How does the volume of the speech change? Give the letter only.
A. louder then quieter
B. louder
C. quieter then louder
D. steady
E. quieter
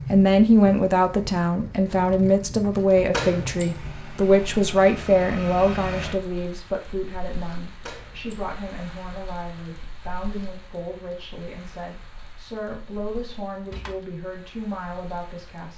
E.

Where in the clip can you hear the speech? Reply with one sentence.
The speech can be heard from 0.1 to 15.7 s.